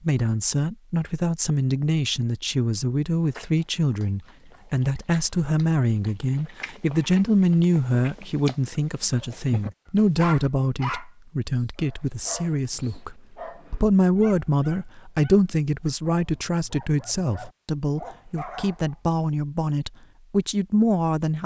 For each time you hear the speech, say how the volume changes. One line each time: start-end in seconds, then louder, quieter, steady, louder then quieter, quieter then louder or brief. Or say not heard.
0.0-21.4 steady.